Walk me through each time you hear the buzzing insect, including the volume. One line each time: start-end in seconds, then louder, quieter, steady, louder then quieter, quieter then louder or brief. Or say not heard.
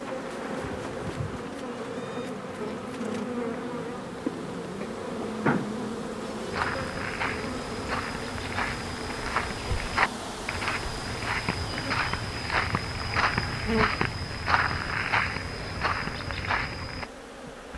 0.0-17.7 quieter.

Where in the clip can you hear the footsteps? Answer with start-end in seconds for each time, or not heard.
6.5-17.1.